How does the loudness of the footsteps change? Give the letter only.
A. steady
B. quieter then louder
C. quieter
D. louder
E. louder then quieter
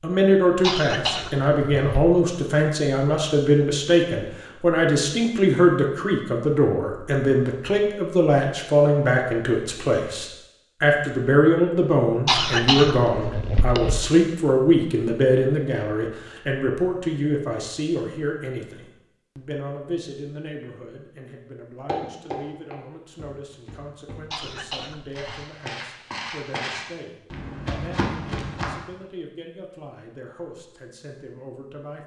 B.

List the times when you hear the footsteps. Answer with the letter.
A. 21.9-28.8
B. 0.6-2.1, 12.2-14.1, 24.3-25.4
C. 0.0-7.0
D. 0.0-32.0
A.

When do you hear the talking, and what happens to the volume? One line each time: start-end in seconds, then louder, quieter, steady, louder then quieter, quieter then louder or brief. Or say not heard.
0.0-32.0 quieter.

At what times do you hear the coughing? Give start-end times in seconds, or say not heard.
0.6-2.1, 12.2-14.1, 24.3-25.4.